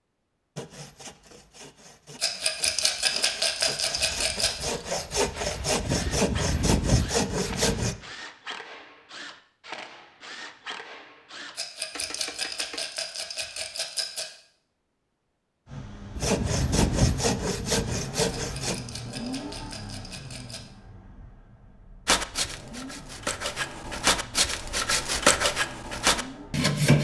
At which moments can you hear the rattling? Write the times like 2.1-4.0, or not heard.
2.2-4.7, 11.6-14.3, 18.4-20.6.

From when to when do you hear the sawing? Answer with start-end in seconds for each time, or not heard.
0.6-8.0, 16.1-18.8, 22.1-26.9.